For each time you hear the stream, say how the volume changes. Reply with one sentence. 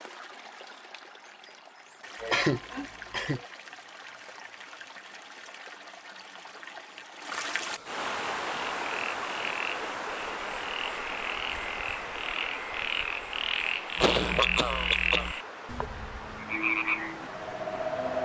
You can hear the stream from 0.0 to 18.2 s, getting louder then quieter.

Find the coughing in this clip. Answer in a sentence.
You can hear the coughing from 2.2 to 3.4 s and from 13.9 to 15.3 s.